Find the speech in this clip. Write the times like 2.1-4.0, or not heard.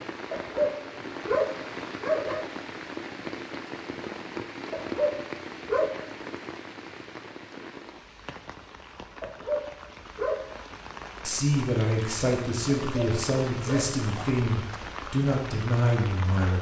11.2-16.5.